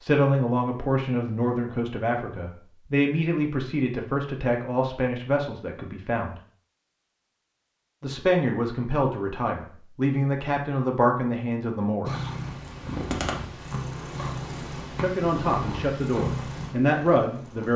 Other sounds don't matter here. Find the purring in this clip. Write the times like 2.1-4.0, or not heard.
12.1-17.7.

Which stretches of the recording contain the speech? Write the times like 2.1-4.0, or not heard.
0.0-6.3, 8.0-12.3, 14.9-17.7.